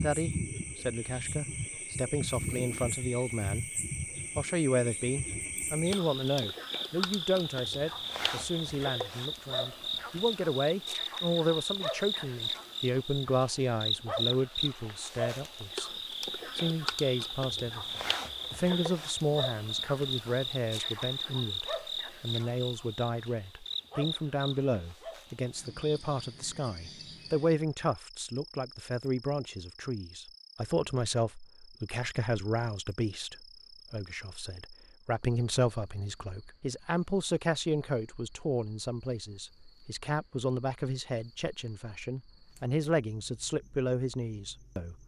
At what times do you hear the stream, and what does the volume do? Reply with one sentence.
You can't hear the stream here.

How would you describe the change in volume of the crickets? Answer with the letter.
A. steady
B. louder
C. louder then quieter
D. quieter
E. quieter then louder
D.